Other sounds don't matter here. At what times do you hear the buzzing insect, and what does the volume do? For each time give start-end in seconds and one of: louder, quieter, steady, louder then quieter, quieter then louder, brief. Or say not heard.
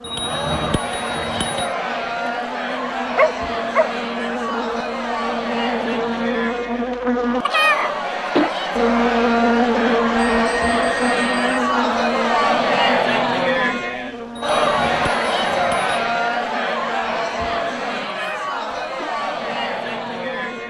0.0-20.6 louder then quieter.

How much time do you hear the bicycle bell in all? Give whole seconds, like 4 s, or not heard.
5 s.